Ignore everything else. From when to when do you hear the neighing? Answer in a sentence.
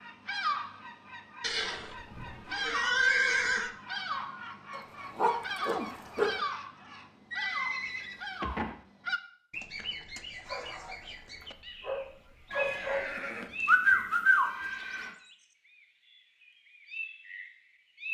The neighing can be heard from 1.4 to 3.7 s, from 7.3 to 8.8 s and from 12.5 to 15.1 s.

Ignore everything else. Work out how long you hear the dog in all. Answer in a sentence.
You can hear the dog for 4 seconds altogether.